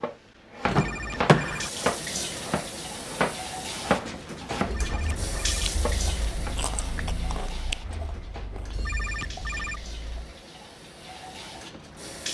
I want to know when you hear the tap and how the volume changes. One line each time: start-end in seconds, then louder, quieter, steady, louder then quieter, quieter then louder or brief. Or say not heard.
1.4-12.2 quieter.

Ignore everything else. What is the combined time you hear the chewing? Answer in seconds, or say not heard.
6 s.